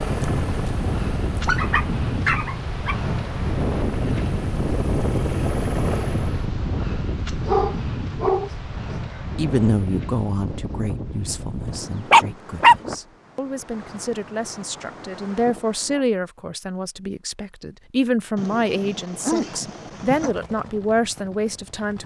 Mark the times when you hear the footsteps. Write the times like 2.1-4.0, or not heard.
not heard.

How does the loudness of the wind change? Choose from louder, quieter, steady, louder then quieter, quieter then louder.
quieter.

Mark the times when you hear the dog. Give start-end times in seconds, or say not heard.
1.4-3.0, 7.5-9.2, 11.7-12.8, 18.4-20.3.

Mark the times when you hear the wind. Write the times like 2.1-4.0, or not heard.
0.0-16.1.